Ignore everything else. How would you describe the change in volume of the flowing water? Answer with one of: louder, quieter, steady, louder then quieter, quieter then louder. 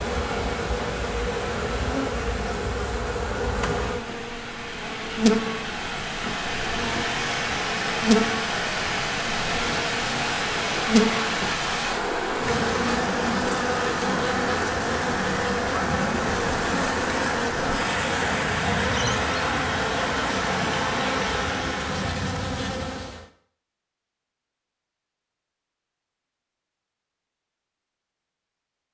louder.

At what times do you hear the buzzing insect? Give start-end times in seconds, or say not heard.
0.0-23.2.